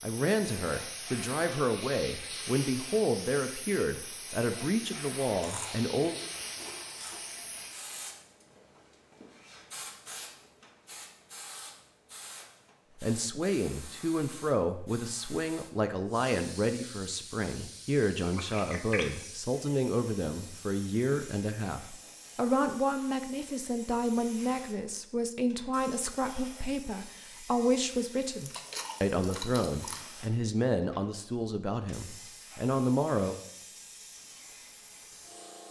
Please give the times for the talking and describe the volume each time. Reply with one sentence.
The talking can be heard from 0.0 to 6.2 s, at a steady volume; and from 13.0 to 33.4 s, at a steady volume.